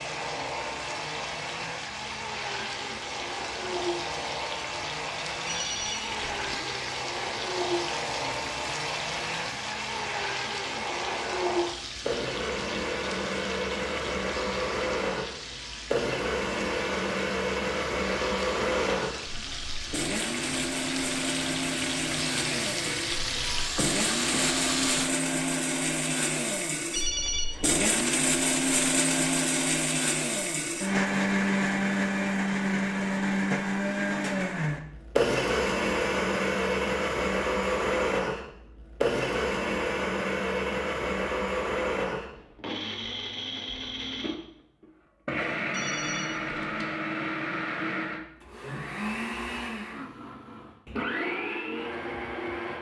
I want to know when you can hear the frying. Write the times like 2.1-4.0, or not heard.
0.0-25.1.